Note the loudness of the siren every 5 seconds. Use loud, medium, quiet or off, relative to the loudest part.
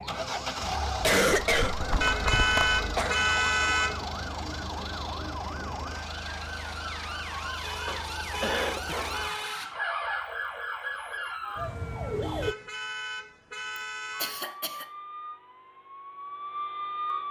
medium, loud, loud, loud.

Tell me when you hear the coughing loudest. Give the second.
1 s.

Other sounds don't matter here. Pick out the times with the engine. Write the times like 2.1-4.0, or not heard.
0.0-9.3.